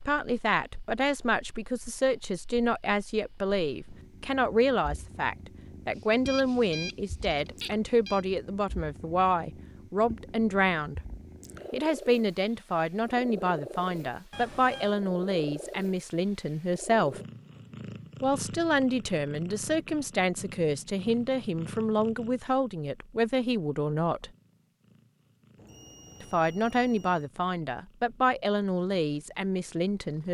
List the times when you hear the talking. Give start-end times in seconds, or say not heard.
0.1-11.0, 11.7-17.2, 18.2-24.3, 26.2-30.2.